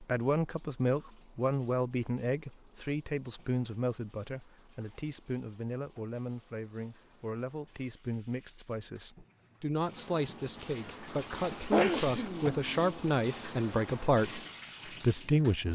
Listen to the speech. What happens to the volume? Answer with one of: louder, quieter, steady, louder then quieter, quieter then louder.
quieter then louder.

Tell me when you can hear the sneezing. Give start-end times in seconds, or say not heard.
11.7-12.9.